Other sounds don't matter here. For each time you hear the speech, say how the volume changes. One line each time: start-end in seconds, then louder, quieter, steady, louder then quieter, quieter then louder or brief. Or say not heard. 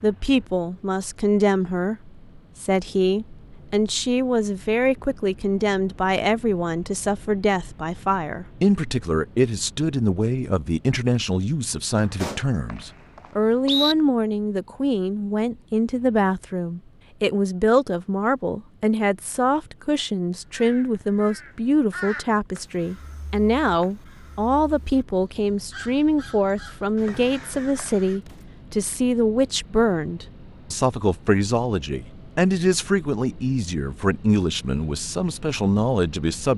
0.0-36.5 steady.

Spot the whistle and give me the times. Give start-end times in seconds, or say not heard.
11.9-13.9, 27.1-27.9.